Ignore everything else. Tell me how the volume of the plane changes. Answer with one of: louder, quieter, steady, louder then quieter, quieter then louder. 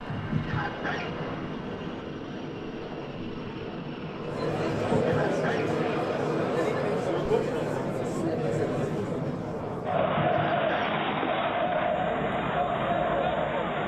steady.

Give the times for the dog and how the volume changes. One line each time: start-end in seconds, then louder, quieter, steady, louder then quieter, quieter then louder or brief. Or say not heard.
not heard.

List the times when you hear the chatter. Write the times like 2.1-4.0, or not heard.
4.2-13.8.